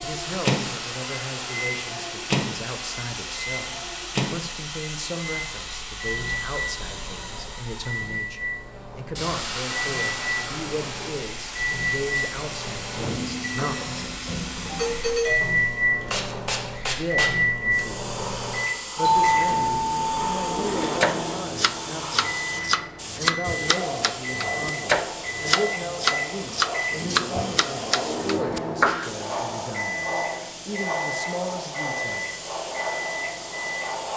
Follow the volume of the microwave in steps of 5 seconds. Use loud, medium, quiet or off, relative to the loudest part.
loud, medium, medium, loud, medium, medium, medium.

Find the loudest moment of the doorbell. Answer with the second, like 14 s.
19 s.